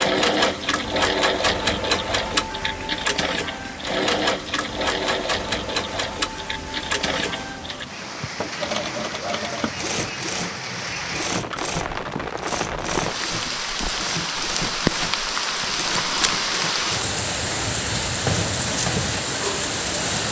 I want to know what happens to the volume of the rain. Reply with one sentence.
The loudness of the rain goes up.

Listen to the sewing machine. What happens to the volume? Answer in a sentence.
The volume of the sewing machine goes down.